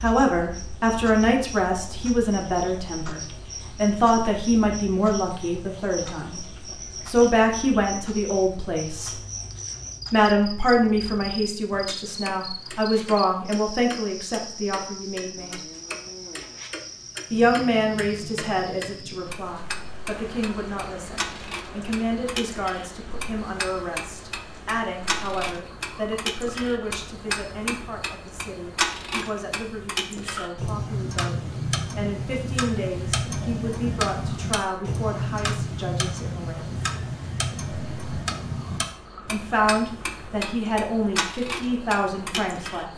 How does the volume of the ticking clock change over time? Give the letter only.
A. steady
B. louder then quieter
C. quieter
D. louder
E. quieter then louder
D.